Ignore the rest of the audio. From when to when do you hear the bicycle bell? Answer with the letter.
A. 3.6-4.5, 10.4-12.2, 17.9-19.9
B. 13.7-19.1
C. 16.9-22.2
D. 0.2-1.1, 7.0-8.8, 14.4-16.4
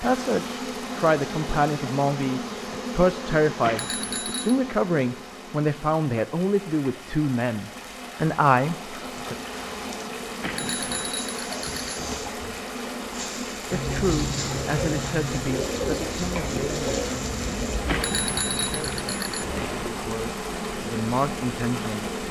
A.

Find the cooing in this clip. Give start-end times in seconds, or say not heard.
13.7-19.1.